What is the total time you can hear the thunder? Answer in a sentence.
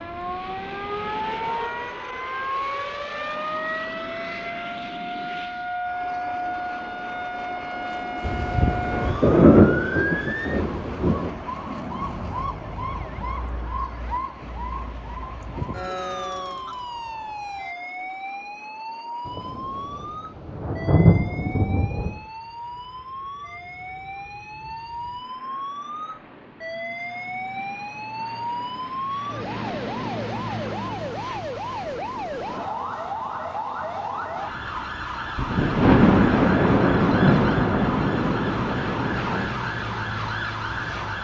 The thunder can be heard for 10 seconds in total.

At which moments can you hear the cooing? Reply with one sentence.
The cooing can't be heard in this clip.